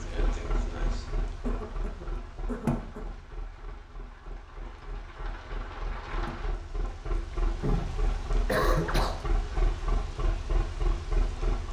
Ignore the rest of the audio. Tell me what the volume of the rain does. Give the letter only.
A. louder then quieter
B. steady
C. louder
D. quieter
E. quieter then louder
E.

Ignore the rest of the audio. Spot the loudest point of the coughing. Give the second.
9 s.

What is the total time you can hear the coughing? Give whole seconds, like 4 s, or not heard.
3 s.